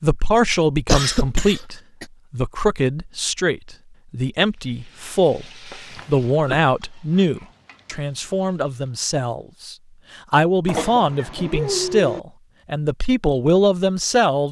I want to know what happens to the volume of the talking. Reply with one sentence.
The volume of the talking stays about the same.